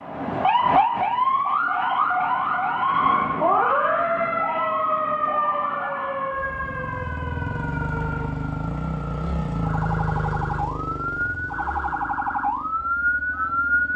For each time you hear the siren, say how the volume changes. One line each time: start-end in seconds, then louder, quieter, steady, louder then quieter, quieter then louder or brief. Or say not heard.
0.0-13.9 quieter then louder.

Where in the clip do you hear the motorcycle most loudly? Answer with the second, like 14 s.
10 s.